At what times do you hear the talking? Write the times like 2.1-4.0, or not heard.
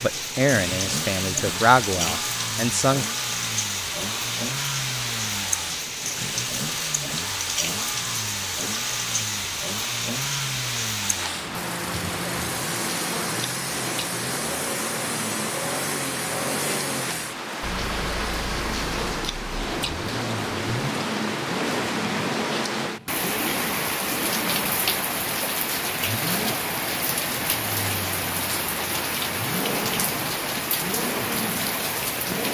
0.0-3.0.